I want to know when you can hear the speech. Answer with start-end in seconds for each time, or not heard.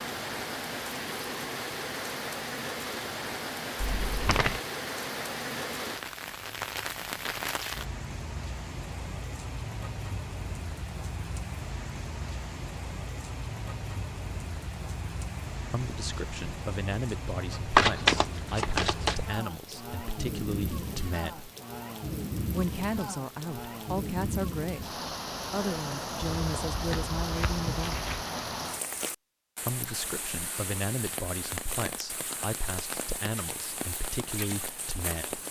15.7-21.5, 22.5-28.0, 29.6-35.4.